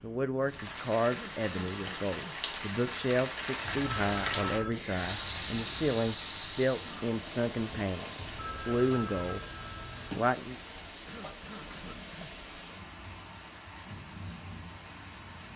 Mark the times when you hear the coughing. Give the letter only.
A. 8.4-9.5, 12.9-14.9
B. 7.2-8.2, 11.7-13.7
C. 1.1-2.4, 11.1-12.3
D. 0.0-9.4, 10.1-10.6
C.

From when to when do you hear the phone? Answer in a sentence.
The phone can be heard from 3.6 to 4.8 s and from 8.2 to 10.2 s.